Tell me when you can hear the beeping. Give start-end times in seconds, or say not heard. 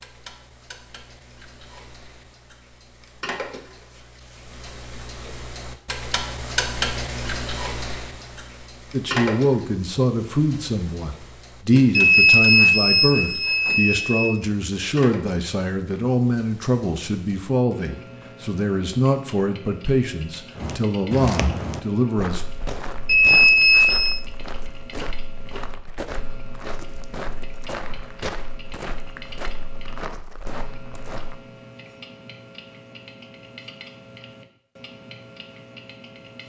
11.9-14.3, 23.1-24.2.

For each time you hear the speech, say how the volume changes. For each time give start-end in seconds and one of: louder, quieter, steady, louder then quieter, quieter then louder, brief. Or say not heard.
8.9-22.4 steady.